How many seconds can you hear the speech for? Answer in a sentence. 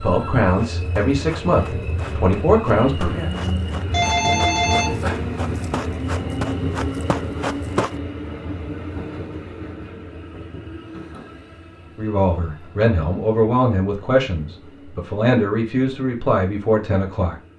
You can hear the speech for 9 seconds altogether.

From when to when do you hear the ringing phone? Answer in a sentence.
The ringing phone can be heard from 3.9 to 5.3 s.